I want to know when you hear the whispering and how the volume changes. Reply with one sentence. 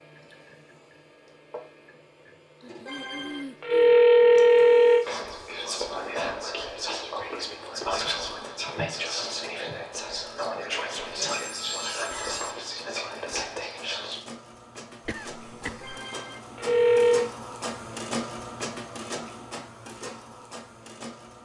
The whispering can be heard from 5.0 to 14.2 s, at a steady volume.